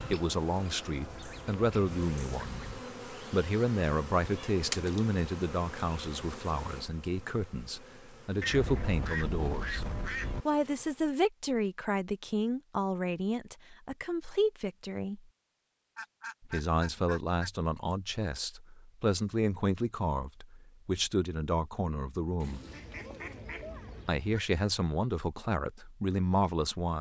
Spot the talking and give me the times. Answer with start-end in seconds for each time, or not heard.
0.0-15.2, 16.4-22.6, 24.1-26.9.